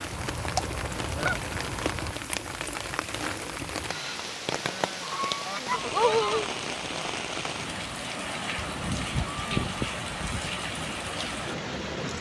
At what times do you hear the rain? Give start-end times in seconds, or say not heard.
0.0-12.1.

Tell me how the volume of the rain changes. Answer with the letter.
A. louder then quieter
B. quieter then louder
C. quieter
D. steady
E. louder
D.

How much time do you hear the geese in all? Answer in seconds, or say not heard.
6 s.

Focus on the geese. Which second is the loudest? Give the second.
6 s.